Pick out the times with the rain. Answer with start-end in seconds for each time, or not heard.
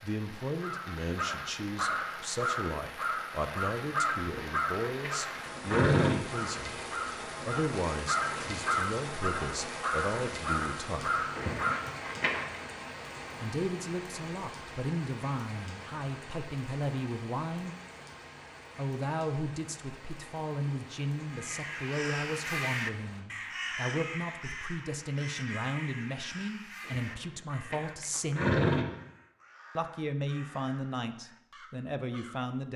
0.0-23.2.